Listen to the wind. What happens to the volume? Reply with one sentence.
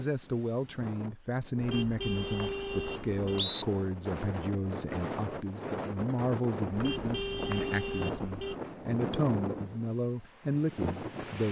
The volume of the wind goes up.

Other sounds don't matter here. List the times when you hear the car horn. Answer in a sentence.
The car horn can be heard from 1.6 to 3.5 s and from 6.7 to 8.6 s.